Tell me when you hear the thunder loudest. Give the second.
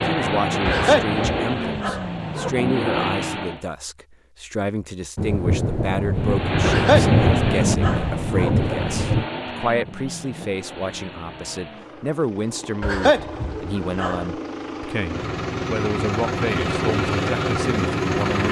7 s.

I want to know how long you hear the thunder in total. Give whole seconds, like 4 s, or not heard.
4 s.